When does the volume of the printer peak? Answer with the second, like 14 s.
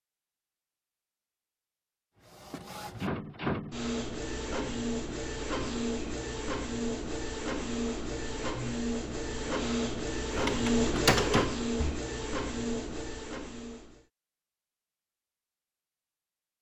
11 s.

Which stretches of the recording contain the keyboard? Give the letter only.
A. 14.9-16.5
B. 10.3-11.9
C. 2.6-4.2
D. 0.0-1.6
B.